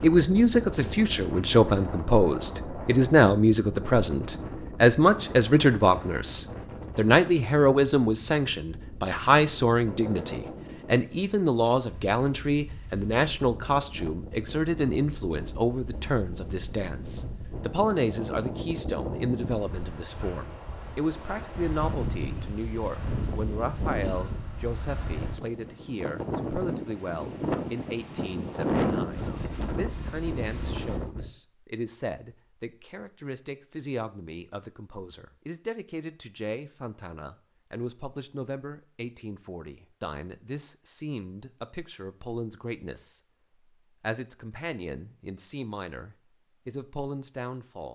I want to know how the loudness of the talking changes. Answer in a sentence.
The volume of the talking goes down.